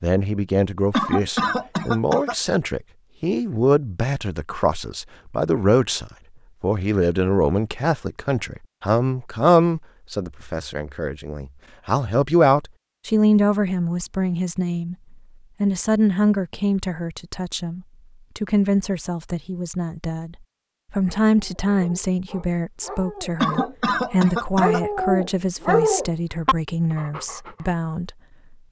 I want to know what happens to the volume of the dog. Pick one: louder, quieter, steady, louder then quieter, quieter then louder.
louder then quieter.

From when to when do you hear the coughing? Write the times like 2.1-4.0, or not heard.
0.9-2.4, 23.4-24.8.